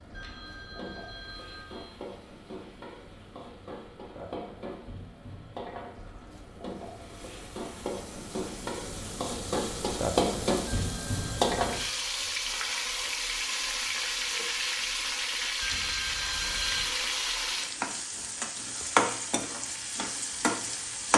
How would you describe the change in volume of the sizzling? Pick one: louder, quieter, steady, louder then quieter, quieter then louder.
louder.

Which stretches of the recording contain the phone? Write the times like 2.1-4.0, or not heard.
0.1-1.9, 10.8-12.1, 15.6-17.0.